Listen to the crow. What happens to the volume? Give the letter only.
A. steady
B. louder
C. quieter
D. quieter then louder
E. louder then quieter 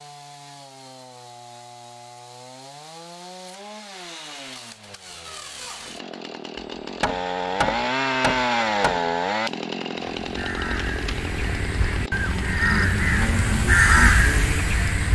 B.